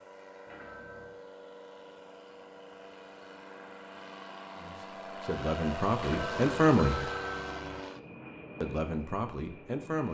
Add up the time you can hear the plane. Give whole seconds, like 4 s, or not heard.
10 s.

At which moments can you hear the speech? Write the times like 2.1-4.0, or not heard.
4.5-7.0, 8.6-10.0.